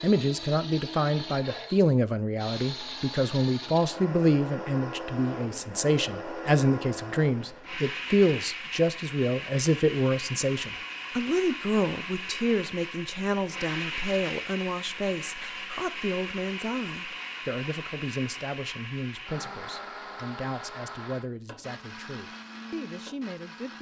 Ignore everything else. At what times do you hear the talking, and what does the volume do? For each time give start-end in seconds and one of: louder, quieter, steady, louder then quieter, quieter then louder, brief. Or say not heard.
0.0-23.7 quieter.